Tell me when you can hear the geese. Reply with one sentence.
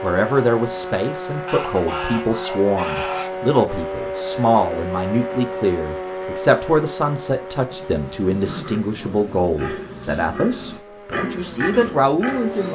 You can hear the geese from 1.4 to 3.3 s and from 7.7 to 9.4 s.